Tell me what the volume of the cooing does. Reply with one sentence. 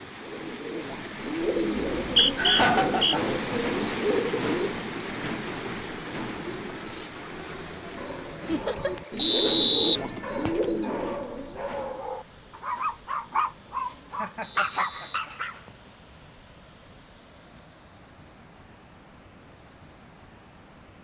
The volume of the cooing goes down, then up.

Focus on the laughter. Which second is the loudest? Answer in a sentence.
The volume of the laughter peaks at 3 seconds.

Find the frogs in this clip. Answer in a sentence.
The frogs can't be heard in this clip.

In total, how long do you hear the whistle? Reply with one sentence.
The whistle can be heard for 4 seconds in total.